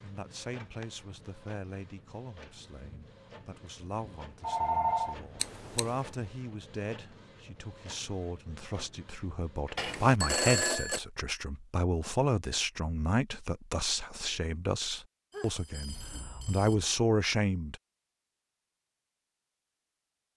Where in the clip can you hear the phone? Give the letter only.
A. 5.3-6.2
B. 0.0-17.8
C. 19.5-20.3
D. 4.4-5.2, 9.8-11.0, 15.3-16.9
D.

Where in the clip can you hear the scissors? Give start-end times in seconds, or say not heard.
5.3-6.2.